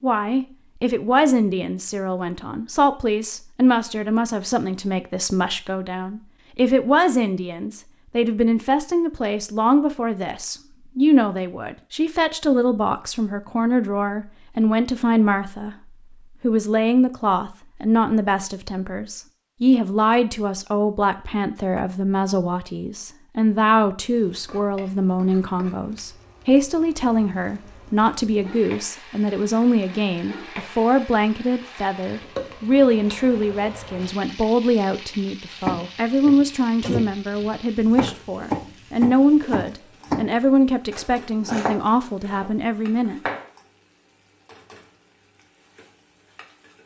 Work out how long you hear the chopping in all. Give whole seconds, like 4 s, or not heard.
8 s.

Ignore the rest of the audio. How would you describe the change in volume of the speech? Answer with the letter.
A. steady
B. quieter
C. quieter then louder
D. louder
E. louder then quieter
A.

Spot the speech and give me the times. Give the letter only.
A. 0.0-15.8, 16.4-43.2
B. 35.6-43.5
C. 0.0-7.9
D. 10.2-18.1
A.